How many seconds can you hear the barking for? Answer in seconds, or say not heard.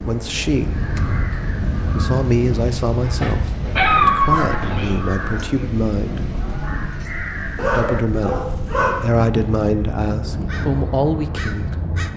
3 s.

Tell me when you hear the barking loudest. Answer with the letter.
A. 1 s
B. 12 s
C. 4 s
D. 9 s
C.